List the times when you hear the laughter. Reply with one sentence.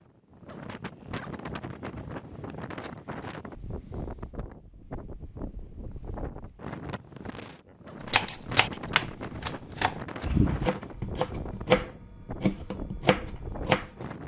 The laughter can't be heard in this clip.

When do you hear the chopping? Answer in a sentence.
You can hear the chopping from 8.1 to 14.1 s.